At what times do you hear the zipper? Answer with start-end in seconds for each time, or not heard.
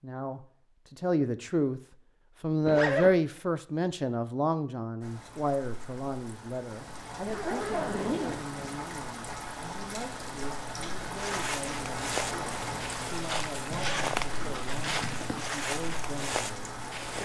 2.6-3.1, 7.1-8.6, 13.7-15.4.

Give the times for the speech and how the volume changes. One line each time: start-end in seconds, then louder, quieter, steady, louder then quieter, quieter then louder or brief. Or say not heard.
0.0-1.8 brief
2.4-17.2 quieter.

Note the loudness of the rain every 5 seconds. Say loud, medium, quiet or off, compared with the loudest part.
off, medium, loud, loud.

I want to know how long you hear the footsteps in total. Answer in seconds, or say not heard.
6 s.